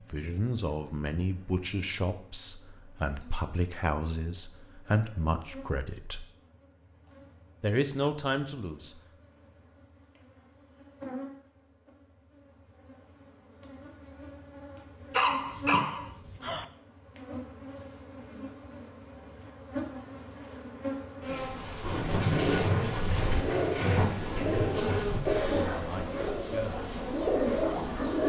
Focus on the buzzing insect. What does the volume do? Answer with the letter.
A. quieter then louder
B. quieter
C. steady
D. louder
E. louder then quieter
D.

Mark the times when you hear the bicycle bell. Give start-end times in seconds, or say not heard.
not heard.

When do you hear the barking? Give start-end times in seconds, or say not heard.
15.1-16.6.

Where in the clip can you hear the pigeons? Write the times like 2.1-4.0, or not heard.
21.8-28.2.